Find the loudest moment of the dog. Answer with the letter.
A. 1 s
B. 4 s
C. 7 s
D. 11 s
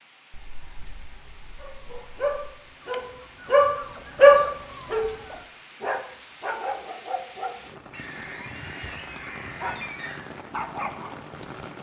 B.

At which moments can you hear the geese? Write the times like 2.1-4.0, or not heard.
0.3-2.5, 7.9-10.2.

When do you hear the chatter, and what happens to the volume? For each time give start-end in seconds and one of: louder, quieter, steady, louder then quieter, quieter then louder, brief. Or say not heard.
not heard.